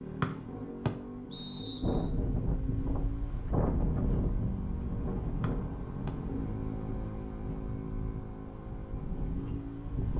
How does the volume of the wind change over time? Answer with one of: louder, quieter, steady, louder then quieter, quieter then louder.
quieter.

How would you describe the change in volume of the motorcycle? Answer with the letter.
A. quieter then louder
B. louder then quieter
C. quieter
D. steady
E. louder
D.